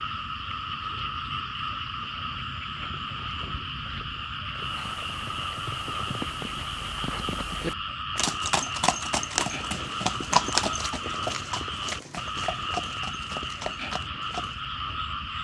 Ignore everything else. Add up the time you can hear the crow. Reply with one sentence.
You can't hear the crow here.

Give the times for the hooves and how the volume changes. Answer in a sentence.
You can hear the hooves from 4.5 to 14.6 s, getting louder then quieter.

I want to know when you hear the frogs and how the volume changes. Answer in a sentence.
You can hear the frogs from 0.0 to 15.3 s, at a steady volume.